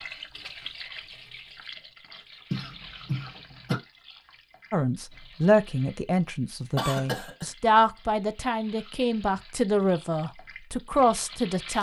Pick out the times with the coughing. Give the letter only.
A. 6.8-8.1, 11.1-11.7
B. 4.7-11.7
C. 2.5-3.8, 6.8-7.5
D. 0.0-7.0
C.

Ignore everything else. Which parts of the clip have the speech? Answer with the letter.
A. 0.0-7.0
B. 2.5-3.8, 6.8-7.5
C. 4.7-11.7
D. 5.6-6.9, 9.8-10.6
C.